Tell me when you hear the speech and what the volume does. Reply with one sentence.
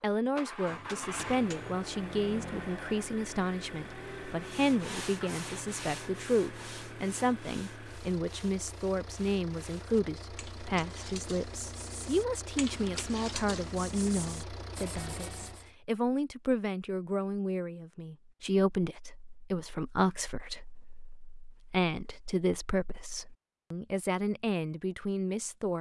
The speech can be heard from 0.0 to 25.7 s, at a steady volume.